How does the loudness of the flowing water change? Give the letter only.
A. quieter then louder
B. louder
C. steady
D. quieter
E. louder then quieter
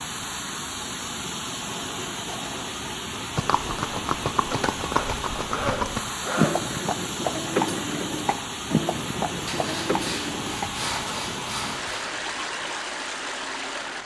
C.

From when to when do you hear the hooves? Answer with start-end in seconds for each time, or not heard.
3.4-12.8.